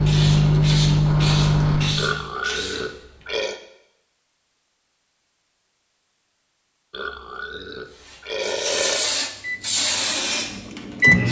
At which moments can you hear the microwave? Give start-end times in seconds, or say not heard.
0.0-2.2, 9.4-11.2.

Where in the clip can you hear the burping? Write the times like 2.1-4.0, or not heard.
1.9-3.6, 6.9-9.1.